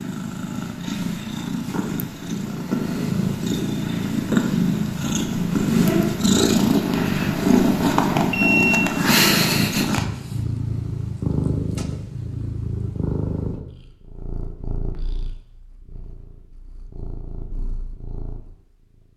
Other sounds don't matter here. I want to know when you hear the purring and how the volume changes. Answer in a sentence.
You can hear the purring from 0.0 to 19.0 s, getting louder then quieter.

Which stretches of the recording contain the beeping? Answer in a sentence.
You can hear the beeping from 8.2 to 8.8 s.